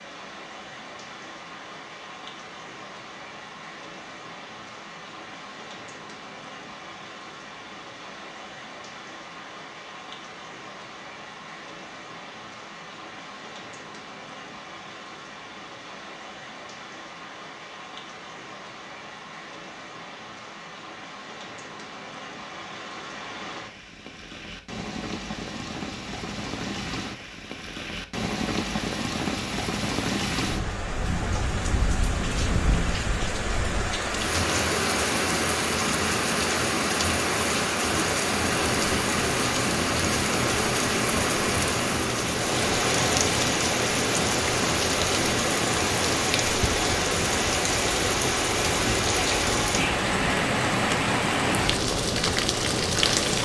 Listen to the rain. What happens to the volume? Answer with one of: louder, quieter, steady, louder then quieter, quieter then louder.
louder.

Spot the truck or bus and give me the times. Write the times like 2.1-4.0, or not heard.
38.4-53.4.